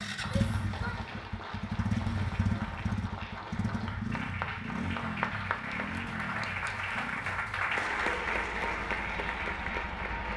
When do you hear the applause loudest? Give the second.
8 s.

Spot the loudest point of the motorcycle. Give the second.
2 s.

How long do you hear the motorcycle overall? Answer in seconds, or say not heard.
10 s.